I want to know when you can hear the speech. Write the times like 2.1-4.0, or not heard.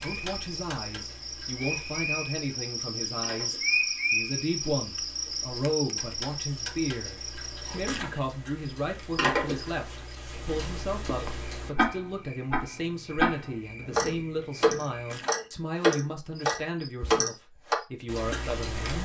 0.0-18.9.